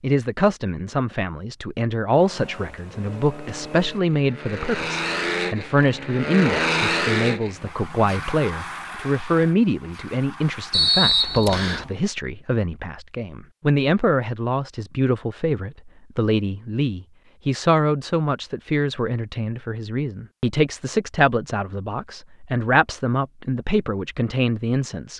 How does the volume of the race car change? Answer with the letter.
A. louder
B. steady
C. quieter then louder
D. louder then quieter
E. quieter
D.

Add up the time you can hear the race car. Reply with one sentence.
You can hear the race car for 10 seconds altogether.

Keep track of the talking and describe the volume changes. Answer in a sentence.
The volume of the talking stays about the same.